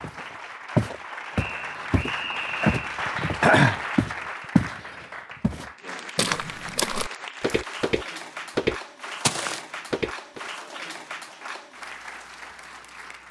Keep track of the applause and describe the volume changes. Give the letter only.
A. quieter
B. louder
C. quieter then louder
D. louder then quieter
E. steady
D.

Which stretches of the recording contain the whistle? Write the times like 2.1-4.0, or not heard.
1.3-2.8.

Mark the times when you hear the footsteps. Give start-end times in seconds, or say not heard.
0.0-4.8, 5.4-10.4.